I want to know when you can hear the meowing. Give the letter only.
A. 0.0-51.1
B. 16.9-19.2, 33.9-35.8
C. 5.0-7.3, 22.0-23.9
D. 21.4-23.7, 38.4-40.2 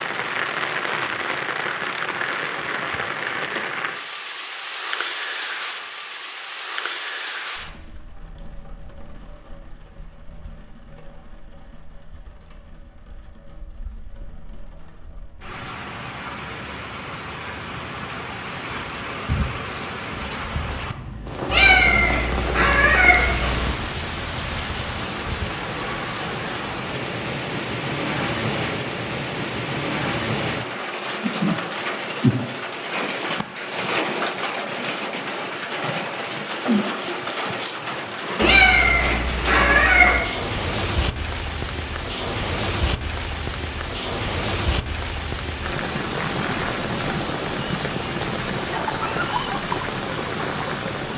D.